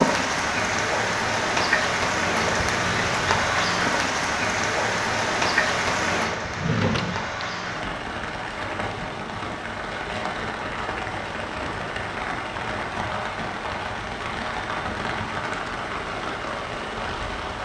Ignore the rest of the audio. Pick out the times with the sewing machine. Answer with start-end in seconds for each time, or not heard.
not heard.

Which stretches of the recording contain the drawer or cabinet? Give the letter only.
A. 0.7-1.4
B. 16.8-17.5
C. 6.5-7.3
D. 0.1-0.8
C.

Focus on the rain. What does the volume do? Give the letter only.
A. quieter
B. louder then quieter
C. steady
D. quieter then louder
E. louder
A.